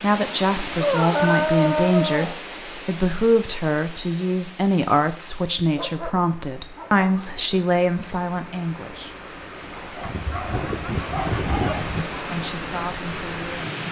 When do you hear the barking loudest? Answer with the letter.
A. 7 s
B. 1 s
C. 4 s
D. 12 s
B.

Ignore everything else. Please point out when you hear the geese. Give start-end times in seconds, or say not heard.
10.0-12.1.